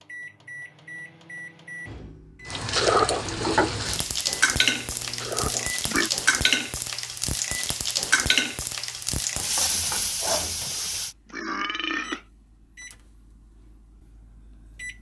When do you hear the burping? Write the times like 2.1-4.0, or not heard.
2.8-3.2, 5.2-6.1, 10.7-12.2.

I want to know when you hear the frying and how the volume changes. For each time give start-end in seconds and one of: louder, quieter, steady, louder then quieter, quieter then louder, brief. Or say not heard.
2.5-11.2 steady.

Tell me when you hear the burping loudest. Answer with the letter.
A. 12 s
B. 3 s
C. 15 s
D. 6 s
B.